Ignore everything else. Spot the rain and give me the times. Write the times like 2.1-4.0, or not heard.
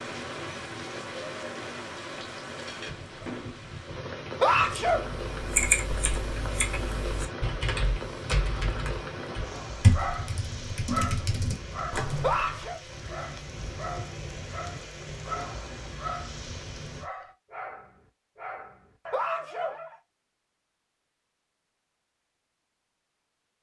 0.0-17.1.